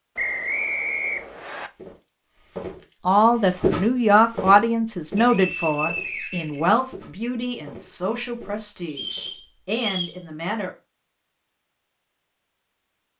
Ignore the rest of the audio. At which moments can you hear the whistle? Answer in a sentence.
You can hear the whistle from 0.1 to 1.7 s, from 5.2 to 6.7 s and from 8.9 to 10.2 s.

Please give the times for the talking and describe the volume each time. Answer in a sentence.
The talking can be heard from 3.0 to 10.7 s, getting quieter.